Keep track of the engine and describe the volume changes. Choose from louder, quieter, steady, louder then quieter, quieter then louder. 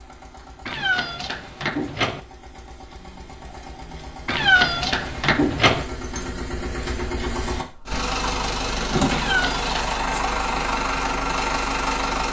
louder.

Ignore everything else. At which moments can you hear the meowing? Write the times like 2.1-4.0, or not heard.
0.7-2.2, 4.2-5.8, 9.1-9.8.